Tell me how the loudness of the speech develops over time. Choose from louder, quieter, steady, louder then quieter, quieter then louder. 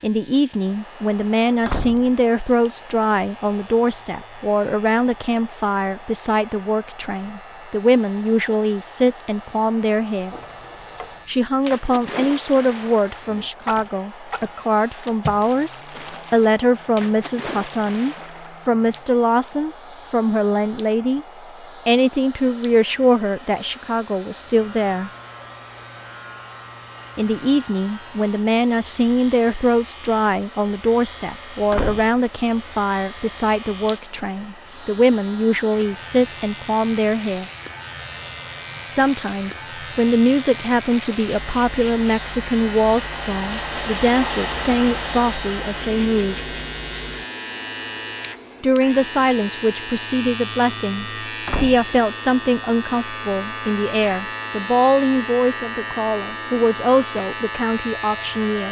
steady.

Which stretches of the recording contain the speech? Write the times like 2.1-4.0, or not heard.
0.0-10.3, 11.2-21.2, 21.9-25.1, 27.1-37.5, 38.9-46.5, 48.6-58.6.